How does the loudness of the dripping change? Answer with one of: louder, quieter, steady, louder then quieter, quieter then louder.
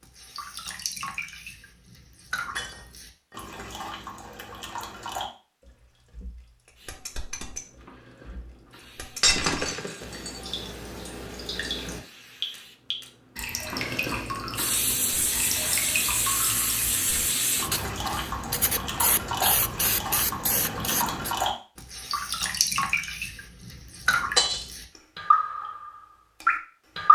louder.